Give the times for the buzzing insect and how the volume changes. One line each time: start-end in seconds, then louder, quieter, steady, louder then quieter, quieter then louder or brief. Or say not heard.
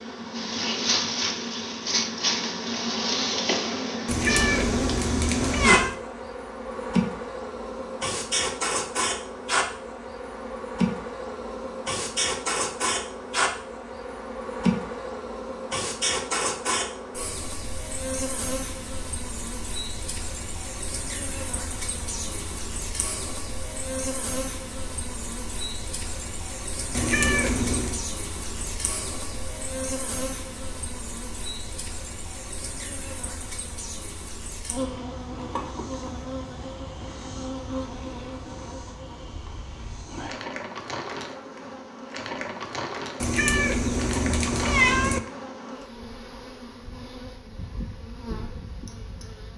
0.0-49.5 quieter.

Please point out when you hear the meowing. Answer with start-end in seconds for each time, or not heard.
4.0-6.0, 26.9-28.0, 43.2-45.2.